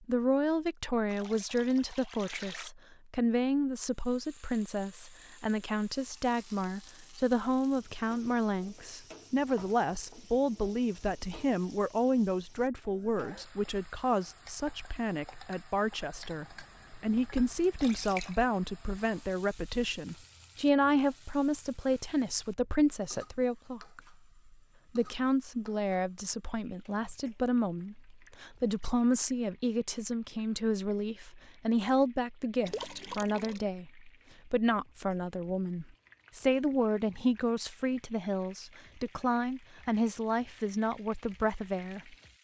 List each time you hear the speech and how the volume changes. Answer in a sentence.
The speech can be heard from 0.1 to 24.0 s, at a steady volume; and from 24.9 to 42.1 s, at a steady volume.